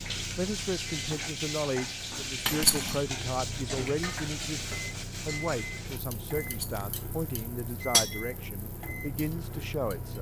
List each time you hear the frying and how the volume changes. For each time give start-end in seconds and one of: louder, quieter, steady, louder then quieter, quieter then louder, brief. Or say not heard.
0.0-10.1 quieter.